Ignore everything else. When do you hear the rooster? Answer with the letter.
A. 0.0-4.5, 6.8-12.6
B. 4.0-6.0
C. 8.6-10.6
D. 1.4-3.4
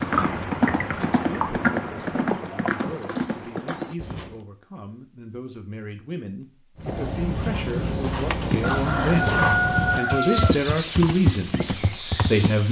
C.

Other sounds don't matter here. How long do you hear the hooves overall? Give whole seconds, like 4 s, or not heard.
10 s.